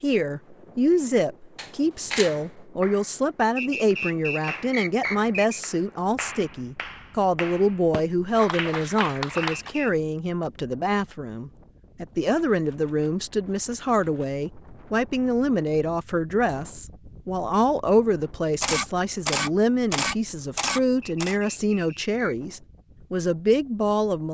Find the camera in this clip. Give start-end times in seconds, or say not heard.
1.6-2.4, 12.5-14.3, 18.6-21.4.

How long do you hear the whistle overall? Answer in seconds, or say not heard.
4 s.